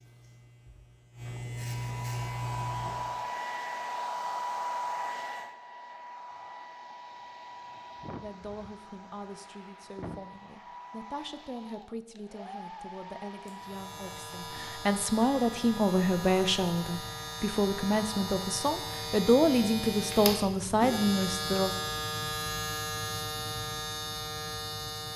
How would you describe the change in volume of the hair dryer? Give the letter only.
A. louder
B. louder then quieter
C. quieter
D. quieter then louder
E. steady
C.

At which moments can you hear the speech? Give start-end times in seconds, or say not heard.
8.2-21.7.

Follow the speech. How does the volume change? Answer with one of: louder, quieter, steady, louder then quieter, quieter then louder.
louder.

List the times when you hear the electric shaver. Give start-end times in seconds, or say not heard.
0.0-3.2, 13.4-25.1.